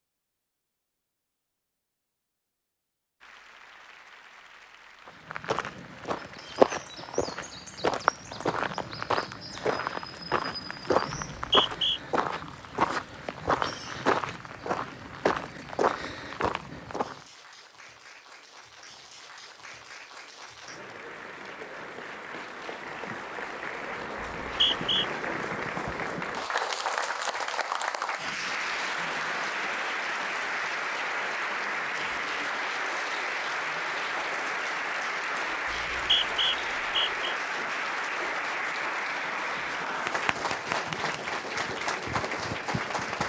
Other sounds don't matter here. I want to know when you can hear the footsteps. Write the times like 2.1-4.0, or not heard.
5.0-17.2.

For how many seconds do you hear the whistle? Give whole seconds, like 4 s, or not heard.
3 s.